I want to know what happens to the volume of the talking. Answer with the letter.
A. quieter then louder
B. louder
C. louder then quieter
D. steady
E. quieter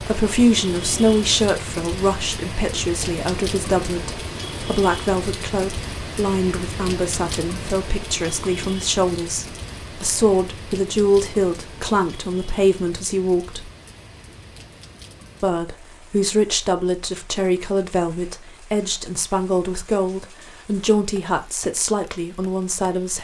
D.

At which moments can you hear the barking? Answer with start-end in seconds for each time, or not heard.
not heard.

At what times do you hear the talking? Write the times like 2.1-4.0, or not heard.
0.0-13.6, 15.4-23.1.